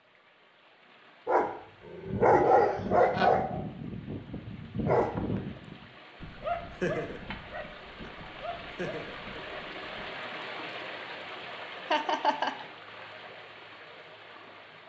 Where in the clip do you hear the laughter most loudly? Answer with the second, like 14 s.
12 s.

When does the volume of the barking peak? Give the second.
2 s.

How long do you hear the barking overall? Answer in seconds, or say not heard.
9 s.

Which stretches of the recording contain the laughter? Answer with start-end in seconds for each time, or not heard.
2.5-3.3, 11.9-12.7.